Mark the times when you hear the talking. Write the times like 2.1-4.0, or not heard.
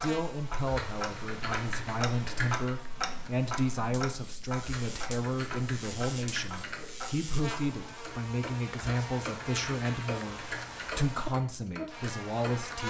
0.0-12.8.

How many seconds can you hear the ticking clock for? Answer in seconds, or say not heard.
13 s.